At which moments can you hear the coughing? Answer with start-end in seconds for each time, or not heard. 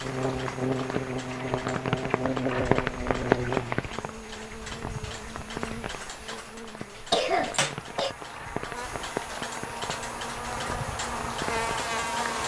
7.0-8.2.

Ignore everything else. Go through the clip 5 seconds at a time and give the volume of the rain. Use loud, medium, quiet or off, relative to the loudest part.
loud, medium, medium.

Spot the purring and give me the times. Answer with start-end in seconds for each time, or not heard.
not heard.